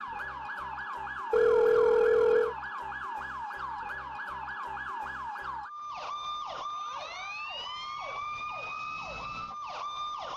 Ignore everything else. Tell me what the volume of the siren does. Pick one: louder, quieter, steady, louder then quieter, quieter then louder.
steady.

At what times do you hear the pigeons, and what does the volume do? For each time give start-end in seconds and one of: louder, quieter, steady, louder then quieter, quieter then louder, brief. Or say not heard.
not heard.